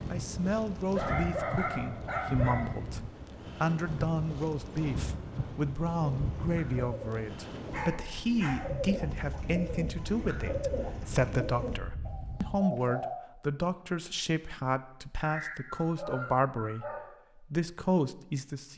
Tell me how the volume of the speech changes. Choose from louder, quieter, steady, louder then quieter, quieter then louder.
steady.